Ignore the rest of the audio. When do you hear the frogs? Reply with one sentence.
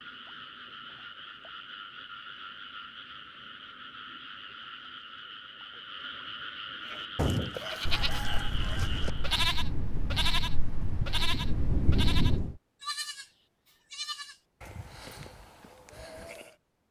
The frogs can be heard from 0.0 to 9.4 s.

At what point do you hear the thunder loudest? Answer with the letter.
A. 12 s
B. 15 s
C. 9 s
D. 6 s
A.